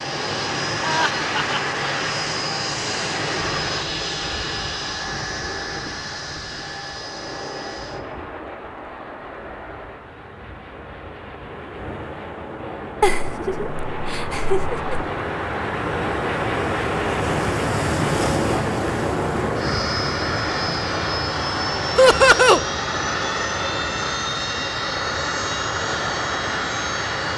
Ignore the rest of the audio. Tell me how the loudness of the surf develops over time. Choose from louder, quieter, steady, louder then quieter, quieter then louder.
louder then quieter.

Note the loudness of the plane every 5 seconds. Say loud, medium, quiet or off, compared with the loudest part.
loud, medium, medium, loud, loud, loud.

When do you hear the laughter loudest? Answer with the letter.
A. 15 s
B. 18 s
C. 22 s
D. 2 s
C.